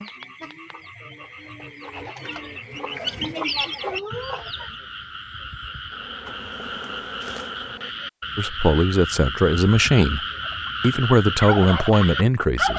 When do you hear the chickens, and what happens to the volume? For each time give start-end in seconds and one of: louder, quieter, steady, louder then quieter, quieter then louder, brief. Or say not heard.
0.0-4.8 louder
10.4-12.7 brief.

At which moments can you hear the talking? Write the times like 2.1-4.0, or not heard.
8.3-10.2, 10.8-12.7.